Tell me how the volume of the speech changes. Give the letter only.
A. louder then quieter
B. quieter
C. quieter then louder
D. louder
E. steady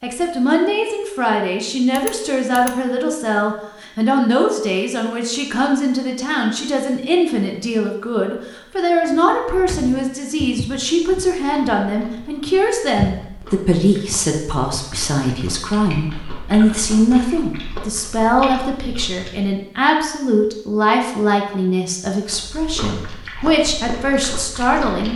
E.